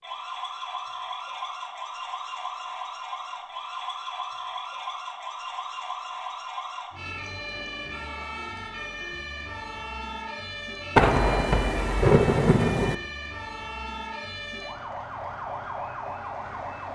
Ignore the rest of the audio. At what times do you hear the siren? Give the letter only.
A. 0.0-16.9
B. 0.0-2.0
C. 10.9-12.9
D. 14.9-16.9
A.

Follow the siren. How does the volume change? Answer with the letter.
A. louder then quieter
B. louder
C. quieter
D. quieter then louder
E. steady
E.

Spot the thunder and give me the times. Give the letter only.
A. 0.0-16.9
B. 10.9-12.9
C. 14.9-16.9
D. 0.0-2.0
B.